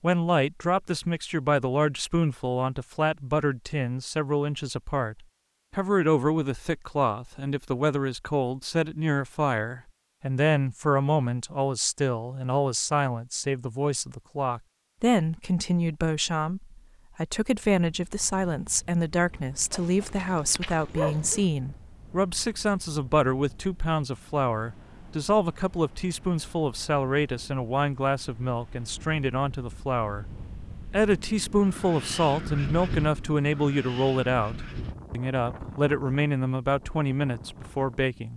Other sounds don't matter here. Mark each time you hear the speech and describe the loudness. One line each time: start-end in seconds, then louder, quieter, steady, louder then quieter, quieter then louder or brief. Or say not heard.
0.0-38.3 steady.